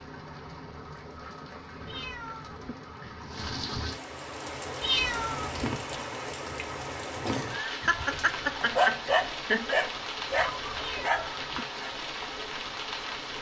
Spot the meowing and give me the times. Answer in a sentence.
You can hear the meowing from 1.9 to 2.8 s, from 4.8 to 5.7 s and from 10.8 to 11.7 s.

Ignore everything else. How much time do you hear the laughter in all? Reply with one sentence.
You can hear the laughter for 2 seconds altogether.